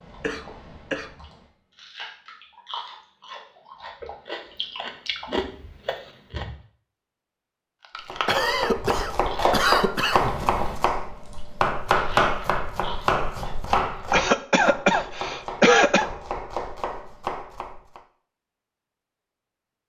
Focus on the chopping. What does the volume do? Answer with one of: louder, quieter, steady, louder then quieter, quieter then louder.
quieter.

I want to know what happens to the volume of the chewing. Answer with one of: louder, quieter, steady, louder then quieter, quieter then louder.
louder then quieter.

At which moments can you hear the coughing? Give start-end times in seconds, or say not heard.
0.2-1.1, 8.2-10.3, 14.1-16.1.